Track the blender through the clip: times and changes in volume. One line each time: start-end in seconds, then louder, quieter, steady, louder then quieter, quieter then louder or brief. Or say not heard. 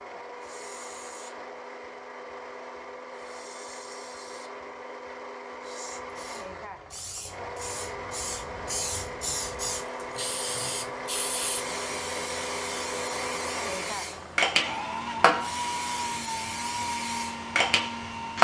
0.0-18.3 louder.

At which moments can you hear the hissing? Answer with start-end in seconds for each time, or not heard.
0.0-1.4, 3.1-4.5, 5.6-18.3.